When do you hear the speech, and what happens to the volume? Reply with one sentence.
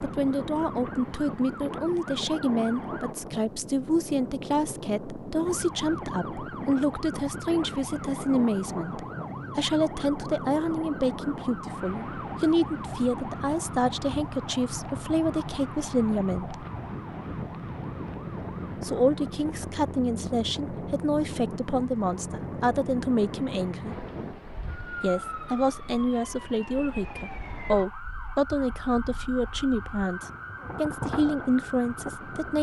The speech can be heard from 0.0 to 16.6 s, at a steady volume; from 18.8 to 24.1 s, at a steady volume; and from 25.0 to 32.5 s, at a steady volume.